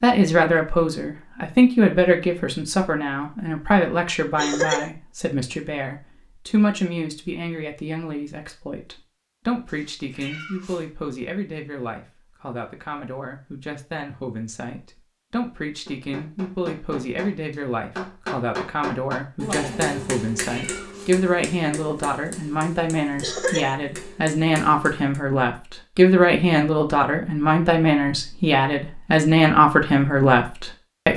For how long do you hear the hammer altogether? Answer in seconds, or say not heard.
9 s.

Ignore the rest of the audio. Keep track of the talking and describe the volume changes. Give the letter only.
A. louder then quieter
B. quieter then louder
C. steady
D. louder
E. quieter
B.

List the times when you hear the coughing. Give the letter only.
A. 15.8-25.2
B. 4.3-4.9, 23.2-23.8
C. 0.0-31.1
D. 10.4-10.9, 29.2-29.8
B.